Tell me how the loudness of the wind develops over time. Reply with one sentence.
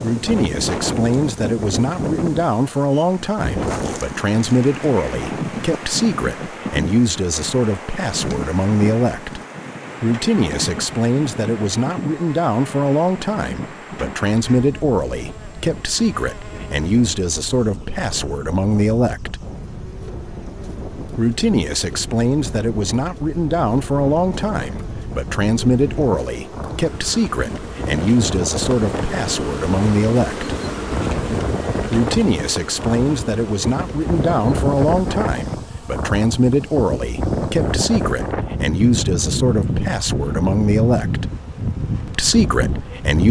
The volume of the wind goes down, then up.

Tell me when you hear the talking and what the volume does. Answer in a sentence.
You can hear the talking from 0.0 to 9.4 s, at a steady volume; from 10.0 to 19.4 s, at a steady volume; from 21.1 to 30.6 s, at a steady volume; from 31.9 to 41.2 s, at a steady volume; and briefly from 42.0 to 43.2 s.